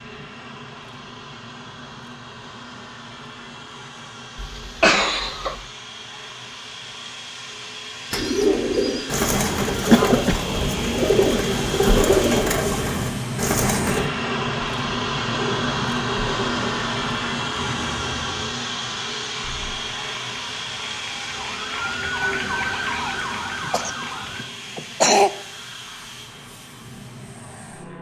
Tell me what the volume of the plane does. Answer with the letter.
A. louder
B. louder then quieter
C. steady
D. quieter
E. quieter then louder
B.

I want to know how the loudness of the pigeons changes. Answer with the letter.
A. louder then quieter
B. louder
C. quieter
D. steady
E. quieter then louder
C.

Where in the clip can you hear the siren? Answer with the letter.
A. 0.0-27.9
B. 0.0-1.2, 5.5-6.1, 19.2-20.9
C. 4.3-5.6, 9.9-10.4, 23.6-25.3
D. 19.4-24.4
D.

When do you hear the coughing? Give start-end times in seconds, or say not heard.
4.3-5.6, 9.9-10.4, 23.6-25.3.